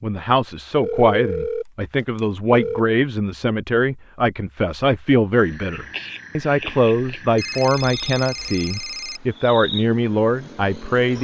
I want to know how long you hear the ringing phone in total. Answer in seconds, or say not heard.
4 s.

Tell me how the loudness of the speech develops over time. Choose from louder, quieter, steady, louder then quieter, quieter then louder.
steady.